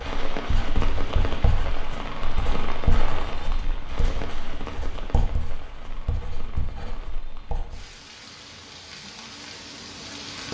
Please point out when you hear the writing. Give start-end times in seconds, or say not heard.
0.0-7.8.